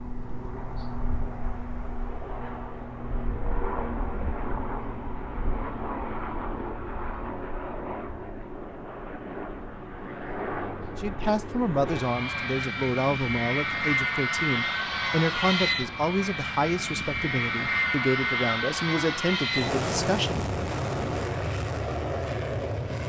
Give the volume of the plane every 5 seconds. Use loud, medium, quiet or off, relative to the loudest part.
medium, medium, loud, loud, loud.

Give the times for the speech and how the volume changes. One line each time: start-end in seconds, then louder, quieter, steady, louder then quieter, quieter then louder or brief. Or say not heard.
10.9-20.4 steady.